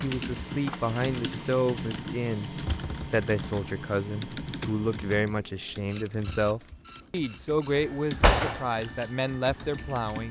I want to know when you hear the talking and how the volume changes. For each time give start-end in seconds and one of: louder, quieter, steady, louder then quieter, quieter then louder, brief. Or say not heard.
0.0-10.2 steady.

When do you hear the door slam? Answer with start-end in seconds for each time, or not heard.
7.8-8.6.